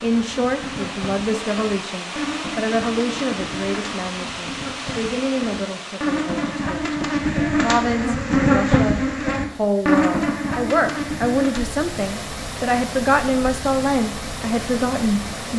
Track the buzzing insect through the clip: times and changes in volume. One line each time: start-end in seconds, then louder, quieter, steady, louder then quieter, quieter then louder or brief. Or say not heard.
0.0-15.5 louder then quieter.